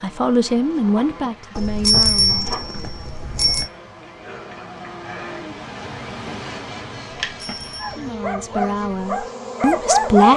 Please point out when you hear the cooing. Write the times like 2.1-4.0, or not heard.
not heard.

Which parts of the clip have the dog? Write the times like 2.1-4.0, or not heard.
7.8-10.3.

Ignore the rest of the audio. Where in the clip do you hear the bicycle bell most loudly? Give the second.
2 s.